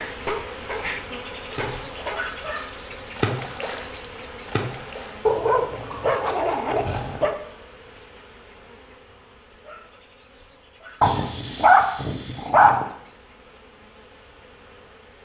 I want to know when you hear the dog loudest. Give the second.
12 s.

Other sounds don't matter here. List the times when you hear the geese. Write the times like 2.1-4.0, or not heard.
not heard.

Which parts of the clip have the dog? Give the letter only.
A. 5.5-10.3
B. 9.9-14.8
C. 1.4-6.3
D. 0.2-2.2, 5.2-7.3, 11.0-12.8
D.